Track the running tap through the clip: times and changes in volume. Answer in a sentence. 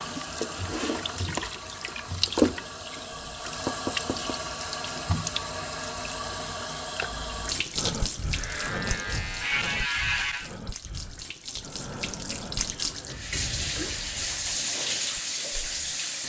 The running tap can be heard from 0.0 to 16.2 s, getting quieter then louder.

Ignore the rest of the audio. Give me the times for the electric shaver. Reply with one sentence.
You can hear the electric shaver from 8.3 to 10.5 s.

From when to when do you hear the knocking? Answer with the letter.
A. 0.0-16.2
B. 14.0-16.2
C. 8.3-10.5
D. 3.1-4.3
D.